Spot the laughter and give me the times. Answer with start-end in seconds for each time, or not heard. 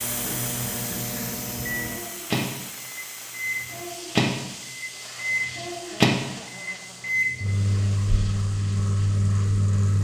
0.2-1.5, 5.8-7.1.